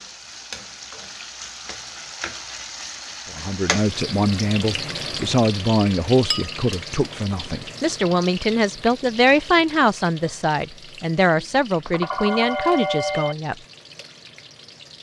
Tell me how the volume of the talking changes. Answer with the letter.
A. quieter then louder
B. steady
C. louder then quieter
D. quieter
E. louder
B.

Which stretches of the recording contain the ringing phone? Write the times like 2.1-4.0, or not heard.
11.3-13.3.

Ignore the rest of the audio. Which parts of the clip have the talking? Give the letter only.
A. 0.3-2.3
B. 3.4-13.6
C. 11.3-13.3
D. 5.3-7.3
B.